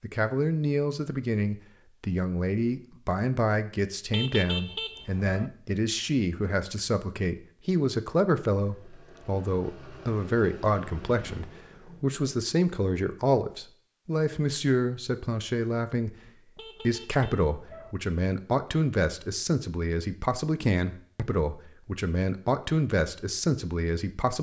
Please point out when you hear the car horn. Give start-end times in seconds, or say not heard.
4.1-5.5, 16.6-17.9.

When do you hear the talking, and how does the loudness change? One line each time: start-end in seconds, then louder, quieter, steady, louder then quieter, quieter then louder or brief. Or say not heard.
0.0-24.3 steady.